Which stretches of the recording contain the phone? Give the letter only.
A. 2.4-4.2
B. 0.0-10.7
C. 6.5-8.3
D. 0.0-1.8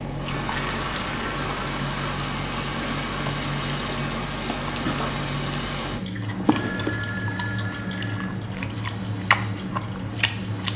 C.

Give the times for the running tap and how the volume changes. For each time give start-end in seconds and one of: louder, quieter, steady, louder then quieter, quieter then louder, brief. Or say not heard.
0.1-10.7 steady.